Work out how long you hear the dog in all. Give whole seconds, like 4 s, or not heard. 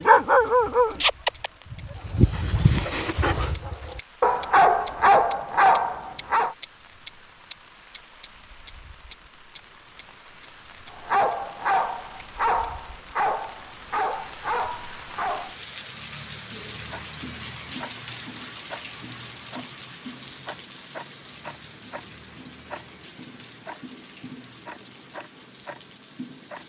11 s.